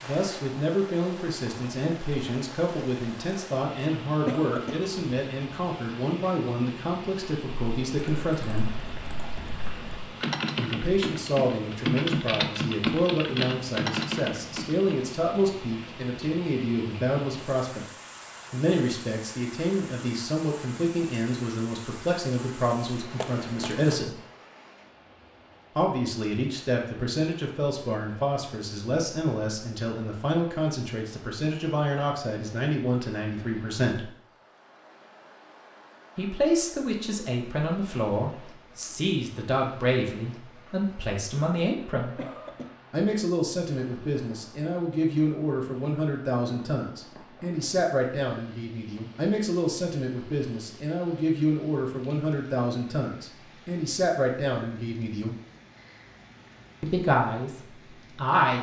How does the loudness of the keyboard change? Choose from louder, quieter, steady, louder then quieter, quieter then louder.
louder.